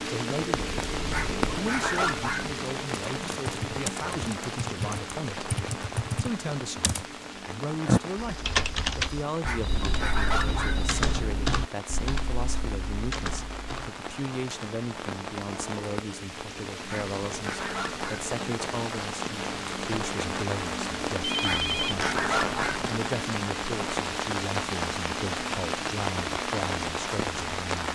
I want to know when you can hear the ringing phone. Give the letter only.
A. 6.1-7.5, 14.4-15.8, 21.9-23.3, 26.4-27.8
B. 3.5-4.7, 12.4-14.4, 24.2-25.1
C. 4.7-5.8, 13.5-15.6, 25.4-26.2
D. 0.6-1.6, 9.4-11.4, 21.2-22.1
D.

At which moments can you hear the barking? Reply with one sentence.
You can hear the barking from 1.1 to 2.5 s, from 9.4 to 10.8 s, from 16.9 to 18.3 s and from 21.4 to 22.9 s.